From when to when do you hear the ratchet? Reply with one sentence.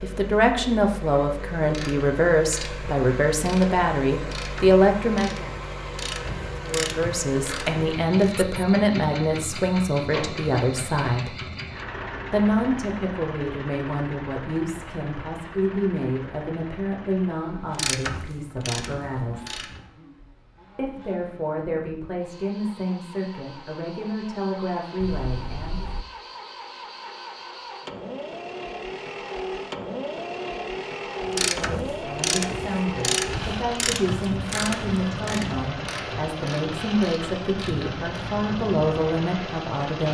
You can hear the ratchet from 1.6 to 8.4 s, from 17.8 to 19.9 s and from 31.2 to 38.0 s.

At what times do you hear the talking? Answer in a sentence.
You can hear the talking from 0.0 to 5.5 s, from 6.6 to 11.3 s, from 12.3 to 19.6 s, from 20.8 to 25.9 s and from 31.2 to 40.1 s.